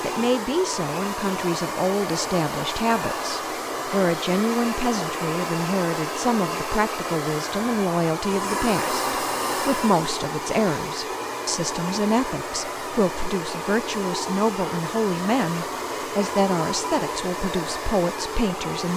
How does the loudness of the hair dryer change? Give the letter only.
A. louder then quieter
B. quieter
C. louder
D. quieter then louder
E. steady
E.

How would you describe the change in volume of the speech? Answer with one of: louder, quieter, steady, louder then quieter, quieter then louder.
steady.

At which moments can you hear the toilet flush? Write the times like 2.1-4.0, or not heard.
not heard.